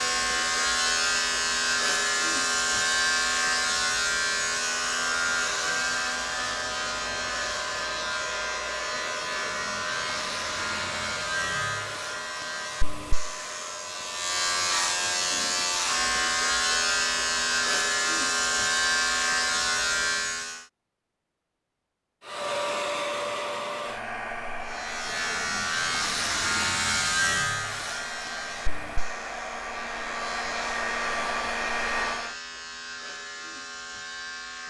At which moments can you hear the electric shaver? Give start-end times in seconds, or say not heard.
0.0-20.6, 24.6-34.6.